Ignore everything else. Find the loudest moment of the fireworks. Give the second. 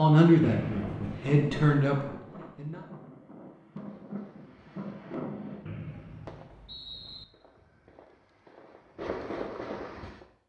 9 s.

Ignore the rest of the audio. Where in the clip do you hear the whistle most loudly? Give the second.
1 s.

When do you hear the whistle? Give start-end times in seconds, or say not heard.
0.4-1.4, 5.7-7.2.